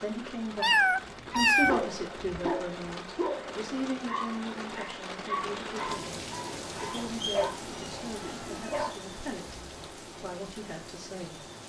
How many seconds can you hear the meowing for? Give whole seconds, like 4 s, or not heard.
3 s.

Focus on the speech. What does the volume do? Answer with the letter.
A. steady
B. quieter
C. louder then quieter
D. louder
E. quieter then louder
B.